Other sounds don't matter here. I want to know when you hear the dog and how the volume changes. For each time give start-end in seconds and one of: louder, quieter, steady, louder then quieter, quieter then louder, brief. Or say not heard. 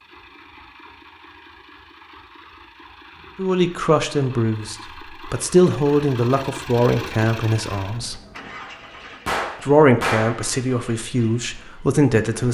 not heard.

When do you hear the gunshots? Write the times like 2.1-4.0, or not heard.
9.2-10.4.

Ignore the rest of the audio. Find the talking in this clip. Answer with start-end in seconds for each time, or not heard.
3.4-8.2, 9.6-12.4.